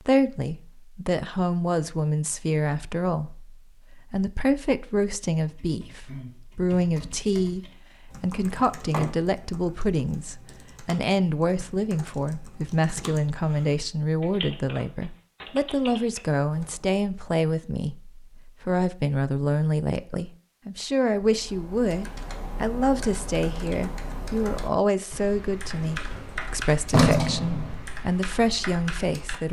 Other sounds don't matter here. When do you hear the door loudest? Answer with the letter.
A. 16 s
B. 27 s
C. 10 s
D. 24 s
B.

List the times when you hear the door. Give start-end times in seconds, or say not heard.
8.6-9.2, 25.8-27.9.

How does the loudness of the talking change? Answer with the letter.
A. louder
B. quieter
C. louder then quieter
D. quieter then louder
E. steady
E.